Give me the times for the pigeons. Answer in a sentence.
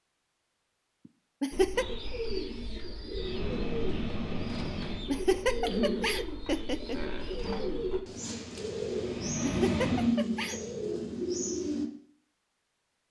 You can hear the pigeons from 1.5 to 11.9 s.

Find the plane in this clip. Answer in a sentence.
The plane can be heard from 3.1 to 5.1 s and from 8.5 to 10.2 s.